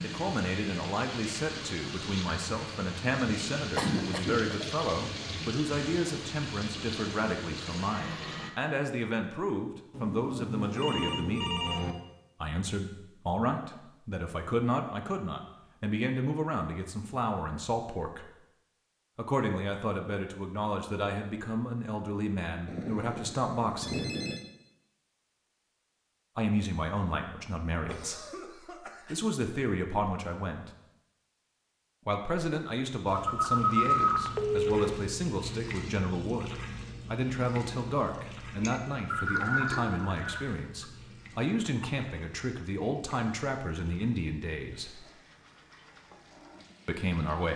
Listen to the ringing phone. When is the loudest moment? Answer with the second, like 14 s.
34 s.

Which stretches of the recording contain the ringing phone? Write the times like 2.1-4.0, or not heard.
9.9-11.9, 22.6-24.4, 33.1-34.8.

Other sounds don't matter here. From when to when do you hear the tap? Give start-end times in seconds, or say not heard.
0.0-8.5, 33.0-47.5.